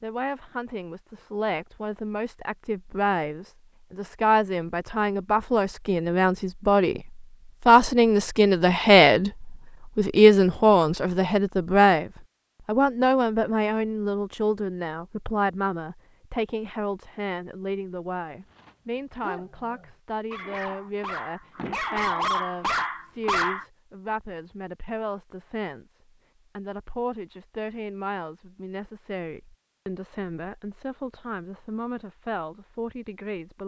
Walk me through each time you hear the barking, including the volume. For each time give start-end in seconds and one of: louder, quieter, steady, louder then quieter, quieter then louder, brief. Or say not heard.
18.4-23.6 louder.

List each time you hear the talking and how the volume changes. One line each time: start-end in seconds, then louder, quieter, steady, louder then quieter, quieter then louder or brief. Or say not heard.
0.0-33.6 louder then quieter.